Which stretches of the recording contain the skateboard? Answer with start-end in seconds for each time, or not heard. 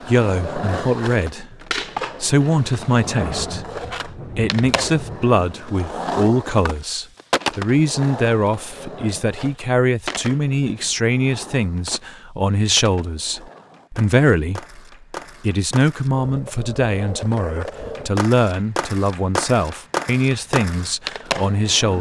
0.0-21.9.